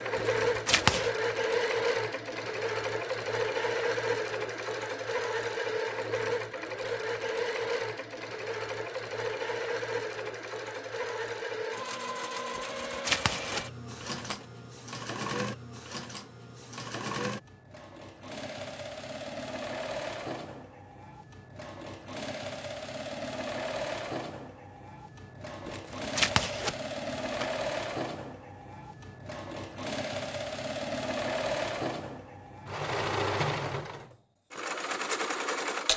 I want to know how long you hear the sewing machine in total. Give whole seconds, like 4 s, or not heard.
36 s.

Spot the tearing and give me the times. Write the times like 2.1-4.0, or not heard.
0.1-1.1, 12.6-14.4, 25.6-27.6.